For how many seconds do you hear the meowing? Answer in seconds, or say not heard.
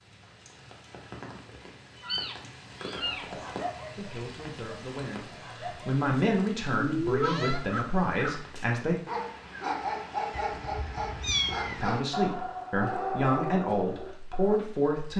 4 s.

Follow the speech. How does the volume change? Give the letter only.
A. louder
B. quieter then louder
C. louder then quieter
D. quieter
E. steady
A.